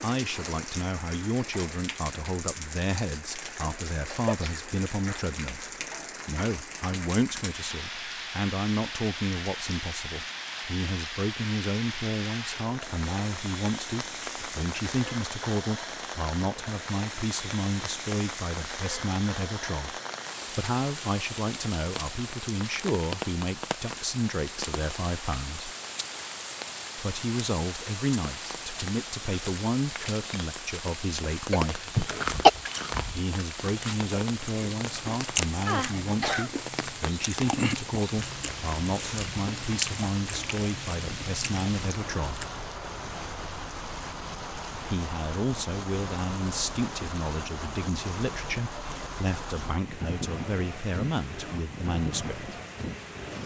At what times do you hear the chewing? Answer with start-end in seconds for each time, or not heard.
32.0-42.6.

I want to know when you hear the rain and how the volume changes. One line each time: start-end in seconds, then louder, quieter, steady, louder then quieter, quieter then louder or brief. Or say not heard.
0.0-53.4 steady.